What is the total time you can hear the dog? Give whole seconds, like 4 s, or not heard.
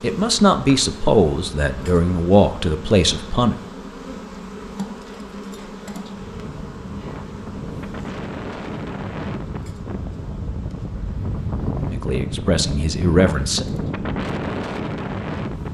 not heard.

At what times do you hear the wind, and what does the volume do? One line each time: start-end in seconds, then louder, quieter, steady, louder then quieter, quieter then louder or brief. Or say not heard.
6.0-15.6 louder.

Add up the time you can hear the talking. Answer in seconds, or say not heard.
5 s.